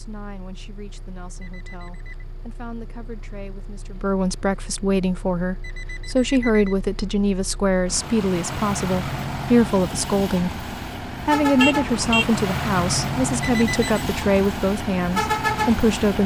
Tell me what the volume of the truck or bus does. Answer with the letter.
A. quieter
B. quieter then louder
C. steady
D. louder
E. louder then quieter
D.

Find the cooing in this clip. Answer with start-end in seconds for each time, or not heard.
not heard.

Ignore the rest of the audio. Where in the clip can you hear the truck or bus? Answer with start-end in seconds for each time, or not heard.
0.0-16.2.